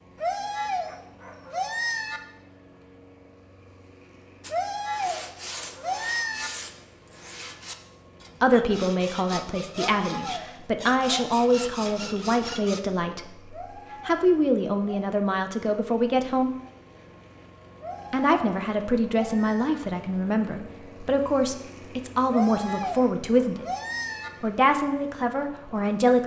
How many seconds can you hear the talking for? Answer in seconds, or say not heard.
15 s.